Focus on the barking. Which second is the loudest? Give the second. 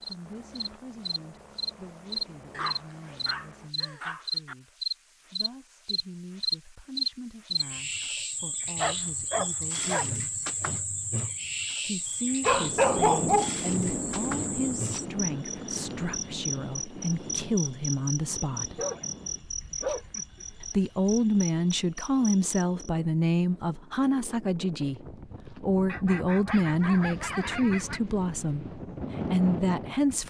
13 s.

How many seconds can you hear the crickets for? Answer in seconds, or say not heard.
23 s.